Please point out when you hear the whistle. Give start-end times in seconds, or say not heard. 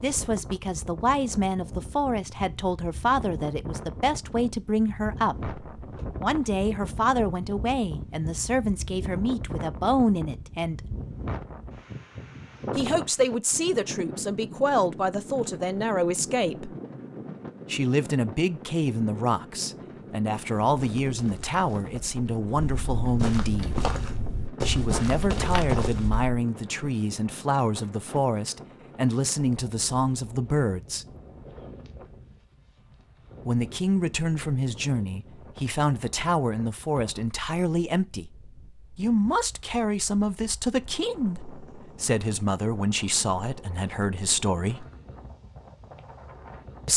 not heard.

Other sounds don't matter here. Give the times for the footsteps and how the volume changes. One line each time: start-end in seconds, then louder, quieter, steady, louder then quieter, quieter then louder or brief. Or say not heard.
20.7-26.3 louder.